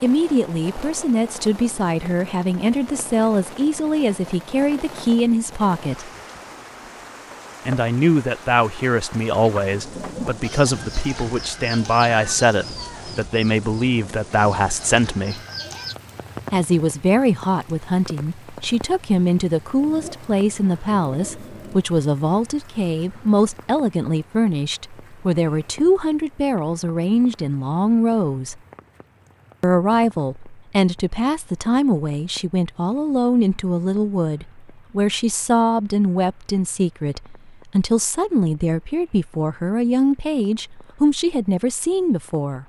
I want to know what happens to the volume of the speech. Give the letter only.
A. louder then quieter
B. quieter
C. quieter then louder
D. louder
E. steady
E.